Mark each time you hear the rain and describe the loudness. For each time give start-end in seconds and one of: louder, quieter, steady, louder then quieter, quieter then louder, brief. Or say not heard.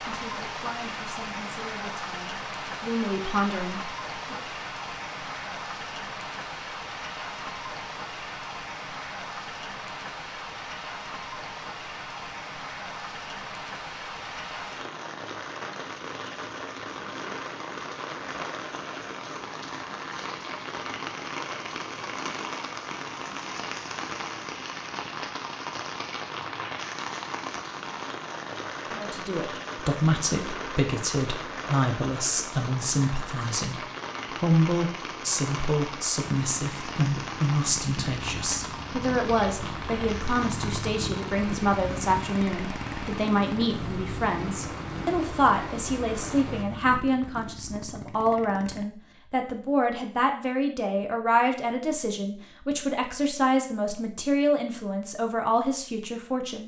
0.0-46.6 steady.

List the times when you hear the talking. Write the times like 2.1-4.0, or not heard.
0.0-4.4, 28.9-56.6.